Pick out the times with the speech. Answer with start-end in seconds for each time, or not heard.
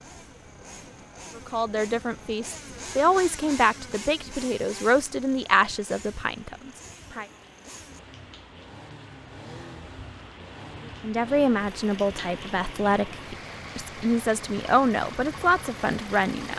1.4-7.2, 11.0-16.5.